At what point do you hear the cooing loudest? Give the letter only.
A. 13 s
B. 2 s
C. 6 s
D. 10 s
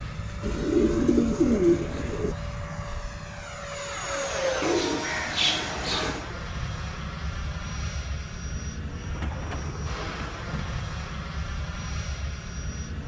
B.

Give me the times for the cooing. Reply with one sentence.
The cooing can be heard from 0.4 to 2.4 s, from 4.6 to 6.3 s and from 9.2 to 10.8 s.